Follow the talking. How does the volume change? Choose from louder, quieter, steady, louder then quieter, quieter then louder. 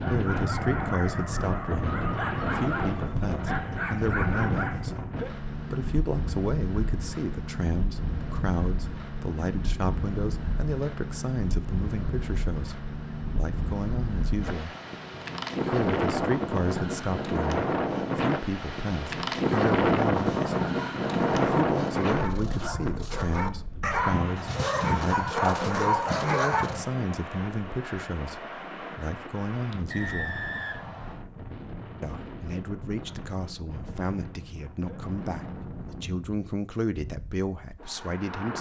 steady.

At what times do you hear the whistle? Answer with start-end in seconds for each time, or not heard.
29.9-31.2.